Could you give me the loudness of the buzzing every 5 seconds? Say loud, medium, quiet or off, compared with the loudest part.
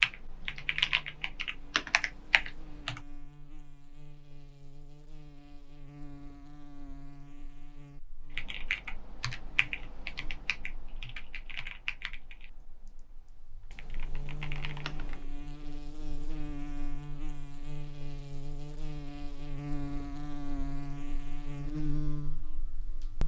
quiet, quiet, medium, loud, loud.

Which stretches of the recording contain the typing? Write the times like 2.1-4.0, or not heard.
0.0-3.0, 8.3-15.2.